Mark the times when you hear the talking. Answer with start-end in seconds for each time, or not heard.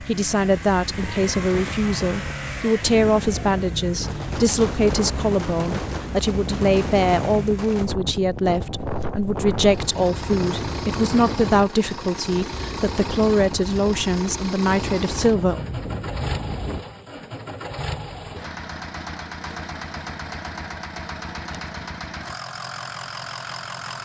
0.0-15.7.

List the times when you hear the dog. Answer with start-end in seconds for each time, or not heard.
not heard.